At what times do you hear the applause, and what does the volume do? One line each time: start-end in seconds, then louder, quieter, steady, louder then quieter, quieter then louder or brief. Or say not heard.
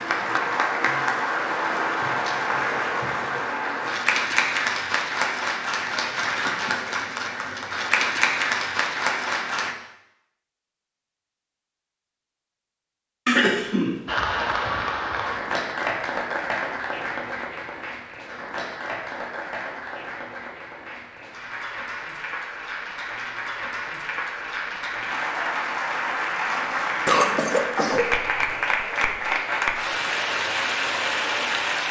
0.0-9.8 steady
14.1-31.8 quieter then louder.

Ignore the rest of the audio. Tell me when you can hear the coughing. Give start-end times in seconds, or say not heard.
13.2-14.1, 27.1-28.1.